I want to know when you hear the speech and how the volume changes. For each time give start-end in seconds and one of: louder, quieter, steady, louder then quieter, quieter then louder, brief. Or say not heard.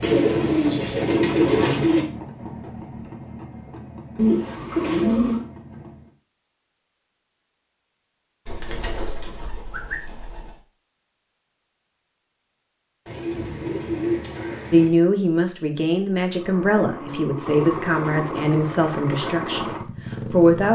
14.7-20.7 quieter.